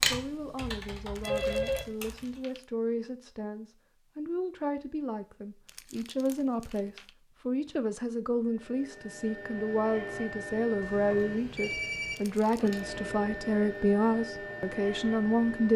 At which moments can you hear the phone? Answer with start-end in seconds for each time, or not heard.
1.2-1.9, 10.8-12.2.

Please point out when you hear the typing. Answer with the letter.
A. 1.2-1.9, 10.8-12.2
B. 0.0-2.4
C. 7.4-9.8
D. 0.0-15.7
B.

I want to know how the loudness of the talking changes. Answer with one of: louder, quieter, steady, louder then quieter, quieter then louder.
louder.